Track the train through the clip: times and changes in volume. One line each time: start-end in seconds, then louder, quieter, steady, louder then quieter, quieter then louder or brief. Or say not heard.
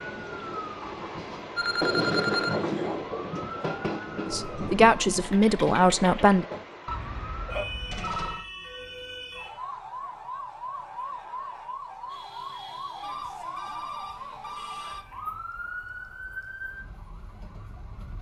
0.0-6.8 louder then quieter.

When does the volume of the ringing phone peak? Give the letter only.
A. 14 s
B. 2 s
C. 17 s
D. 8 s
B.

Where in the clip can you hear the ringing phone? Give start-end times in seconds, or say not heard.
1.6-2.6, 6.8-8.4, 13.0-15.1.